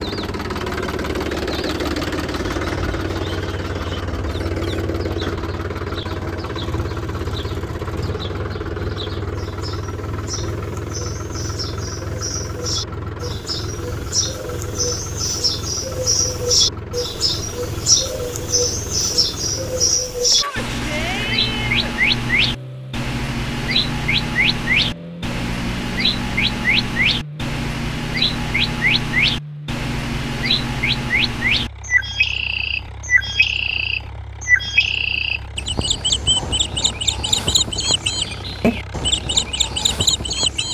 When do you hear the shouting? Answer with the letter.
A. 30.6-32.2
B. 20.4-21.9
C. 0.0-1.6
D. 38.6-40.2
B.